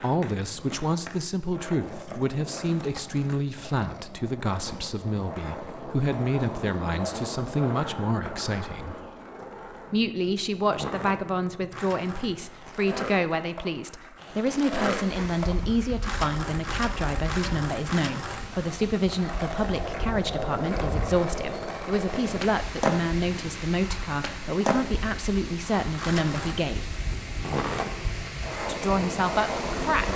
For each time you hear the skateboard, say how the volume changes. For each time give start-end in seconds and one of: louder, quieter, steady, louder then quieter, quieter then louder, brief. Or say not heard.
0.0-30.1 louder.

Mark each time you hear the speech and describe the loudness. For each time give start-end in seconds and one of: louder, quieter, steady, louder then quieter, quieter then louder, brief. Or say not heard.
0.0-8.9 steady
9.9-26.9 steady
28.6-30.1 brief.